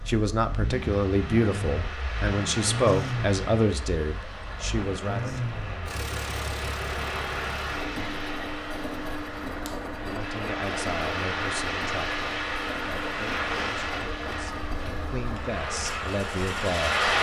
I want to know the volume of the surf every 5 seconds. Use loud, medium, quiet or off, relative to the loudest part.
medium, medium, loud, loud.